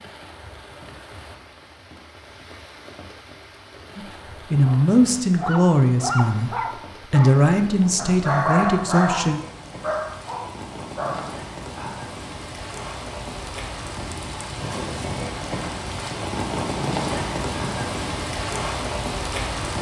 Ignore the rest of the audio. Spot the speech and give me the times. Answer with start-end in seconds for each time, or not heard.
4.0-9.4.